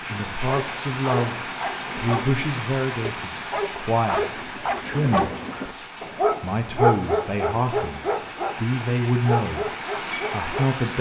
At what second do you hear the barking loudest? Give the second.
7 s.